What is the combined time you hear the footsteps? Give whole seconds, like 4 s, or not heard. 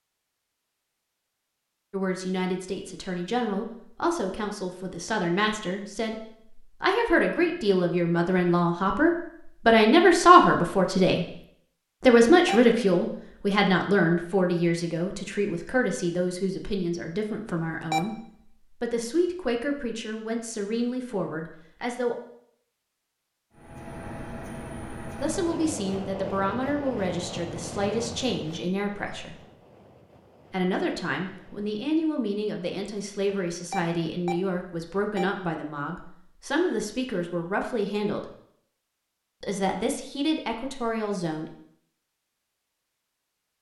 not heard.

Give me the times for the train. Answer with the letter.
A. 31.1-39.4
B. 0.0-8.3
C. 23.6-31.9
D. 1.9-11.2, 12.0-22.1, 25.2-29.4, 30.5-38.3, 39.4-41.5
C.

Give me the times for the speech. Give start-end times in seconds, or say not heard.
1.9-11.2, 12.0-22.1, 25.2-29.4, 30.5-38.3, 39.4-41.5.